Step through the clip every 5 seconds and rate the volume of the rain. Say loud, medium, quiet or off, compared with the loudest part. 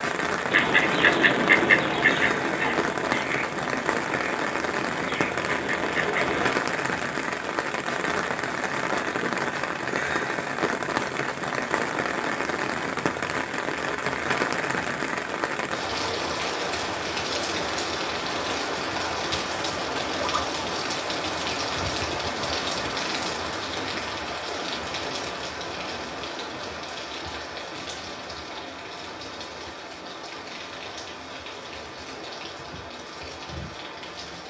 loud, loud, loud, loud, loud, medium, medium.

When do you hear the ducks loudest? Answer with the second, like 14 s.
2 s.